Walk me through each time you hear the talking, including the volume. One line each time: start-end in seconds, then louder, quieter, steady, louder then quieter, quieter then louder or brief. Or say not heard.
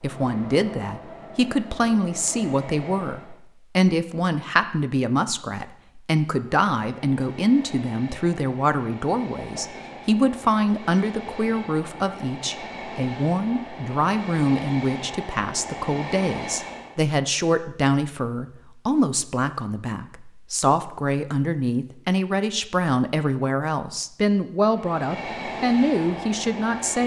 0.0-27.0 steady.